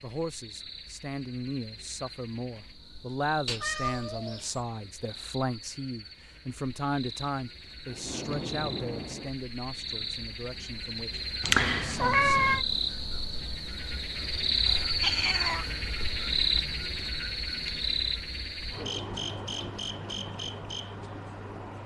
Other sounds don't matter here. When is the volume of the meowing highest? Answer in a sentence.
The loudest moment of the meowing is at 12 seconds.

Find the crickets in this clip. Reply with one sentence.
The crickets can be heard from 0.0 to 21.8 s.